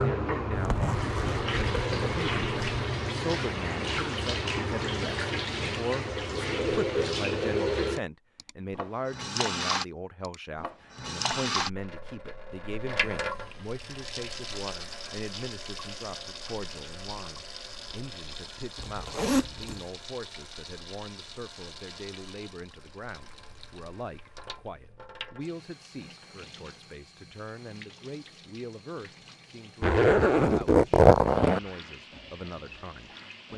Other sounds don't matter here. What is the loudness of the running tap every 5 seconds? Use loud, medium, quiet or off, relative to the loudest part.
loud, loud, medium, quiet, quiet, quiet, quiet.